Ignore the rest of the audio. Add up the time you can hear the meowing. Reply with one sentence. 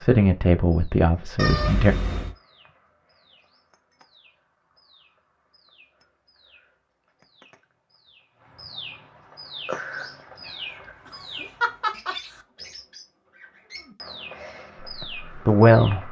The meowing can be heard for 3 seconds in total.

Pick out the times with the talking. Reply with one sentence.
The talking can be heard from 0.0 to 1.9 s and from 15.4 to 16.0 s.